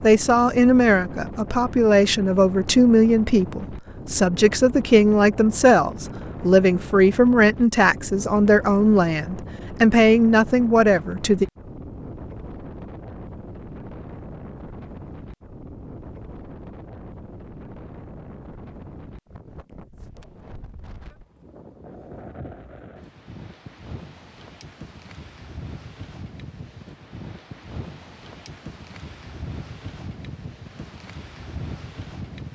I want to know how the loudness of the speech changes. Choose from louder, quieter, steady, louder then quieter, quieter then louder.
steady.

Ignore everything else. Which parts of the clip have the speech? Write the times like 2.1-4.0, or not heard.
0.0-11.4.